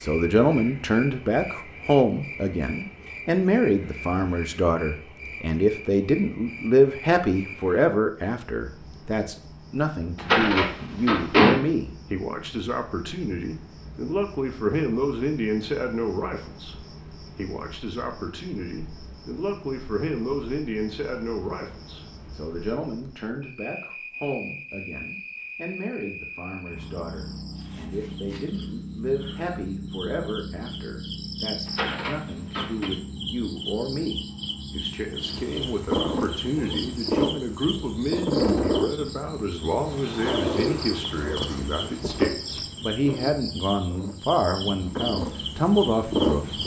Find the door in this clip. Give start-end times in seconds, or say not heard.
10.2-11.6, 31.6-32.9.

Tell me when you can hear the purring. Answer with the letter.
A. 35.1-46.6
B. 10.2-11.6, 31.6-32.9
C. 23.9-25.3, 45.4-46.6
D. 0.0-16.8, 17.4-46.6
A.